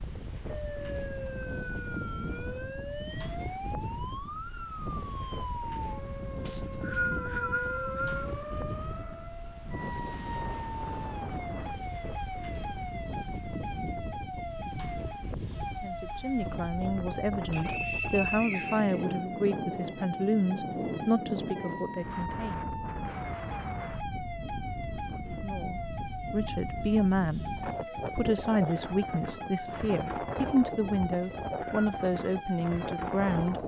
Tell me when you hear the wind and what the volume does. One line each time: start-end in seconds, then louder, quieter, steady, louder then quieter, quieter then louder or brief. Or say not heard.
0.0-33.6 steady.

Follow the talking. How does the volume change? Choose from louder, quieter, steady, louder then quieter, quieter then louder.
steady.